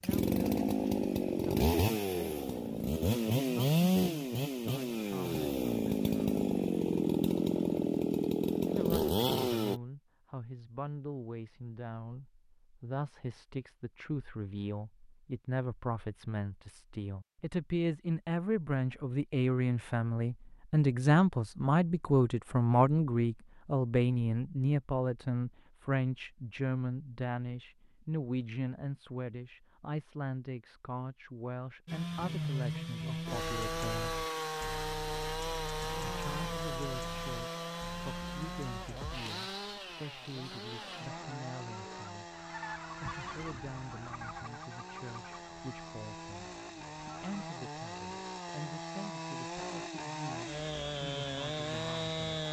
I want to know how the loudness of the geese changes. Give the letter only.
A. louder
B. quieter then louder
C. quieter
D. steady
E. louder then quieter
E.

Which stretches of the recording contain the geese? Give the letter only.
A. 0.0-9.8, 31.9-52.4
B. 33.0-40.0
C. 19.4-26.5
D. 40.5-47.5
D.